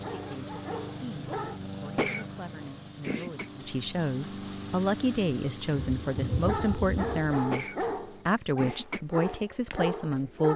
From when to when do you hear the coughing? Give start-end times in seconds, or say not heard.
1.9-3.5, 7.5-9.0.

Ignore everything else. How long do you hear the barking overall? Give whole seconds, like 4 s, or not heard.
6 s.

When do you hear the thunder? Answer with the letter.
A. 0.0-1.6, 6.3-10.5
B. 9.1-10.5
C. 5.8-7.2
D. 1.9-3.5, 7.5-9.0
C.